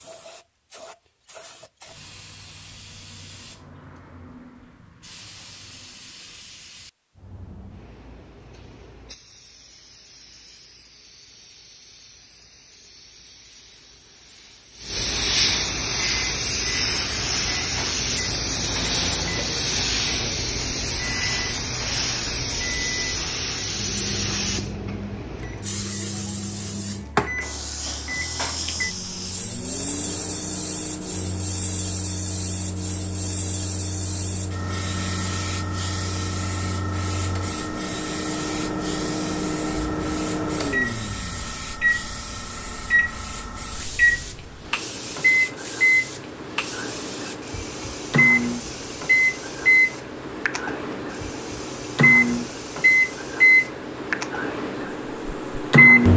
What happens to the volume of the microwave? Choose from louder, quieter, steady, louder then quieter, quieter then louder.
louder.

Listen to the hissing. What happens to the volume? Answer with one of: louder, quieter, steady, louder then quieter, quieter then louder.
louder then quieter.